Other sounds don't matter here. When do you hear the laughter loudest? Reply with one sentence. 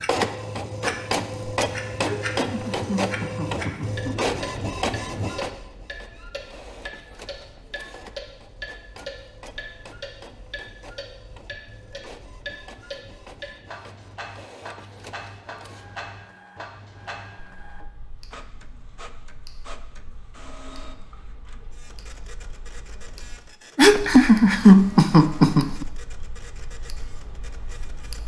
The loudest moment of the laughter is at 25 seconds.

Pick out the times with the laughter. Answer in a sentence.
The laughter can be heard from 2.0 to 4.3 s and from 23.8 to 25.9 s.